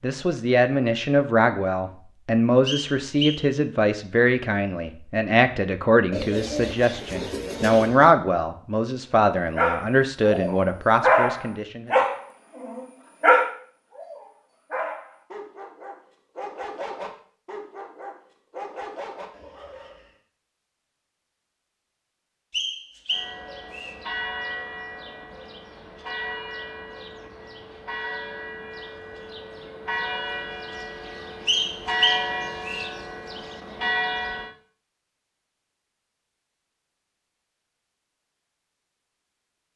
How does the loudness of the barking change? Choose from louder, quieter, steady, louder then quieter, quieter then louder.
quieter.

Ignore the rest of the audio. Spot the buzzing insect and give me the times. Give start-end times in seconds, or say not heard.
not heard.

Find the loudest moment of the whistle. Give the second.
32 s.